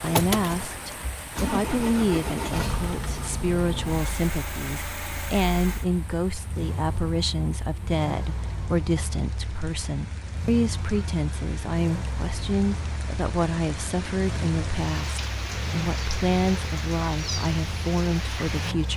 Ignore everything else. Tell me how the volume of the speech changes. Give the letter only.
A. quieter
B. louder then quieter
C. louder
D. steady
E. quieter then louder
D.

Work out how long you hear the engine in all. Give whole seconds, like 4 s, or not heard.
19 s.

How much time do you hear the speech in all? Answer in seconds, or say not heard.
19 s.